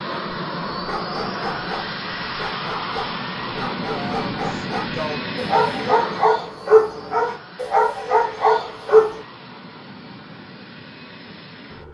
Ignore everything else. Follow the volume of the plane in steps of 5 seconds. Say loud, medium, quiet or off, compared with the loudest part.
loud, medium, quiet.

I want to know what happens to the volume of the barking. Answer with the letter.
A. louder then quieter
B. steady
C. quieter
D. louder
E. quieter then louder
D.